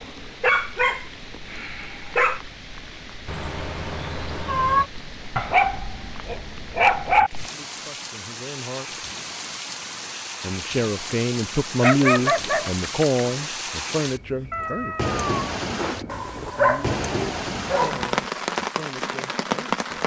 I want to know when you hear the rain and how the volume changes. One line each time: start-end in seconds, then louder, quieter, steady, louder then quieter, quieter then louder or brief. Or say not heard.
0.0-20.0 louder.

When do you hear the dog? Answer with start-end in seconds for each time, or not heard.
0.4-2.4, 5.3-7.3, 11.8-13.2, 16.1-18.1.